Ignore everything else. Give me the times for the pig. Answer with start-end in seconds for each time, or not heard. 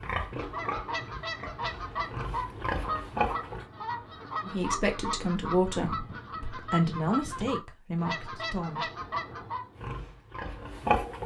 0.0-3.6, 9.8-11.2.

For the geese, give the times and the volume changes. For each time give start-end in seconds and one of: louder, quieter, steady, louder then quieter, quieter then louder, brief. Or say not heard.
0.1-9.8 steady.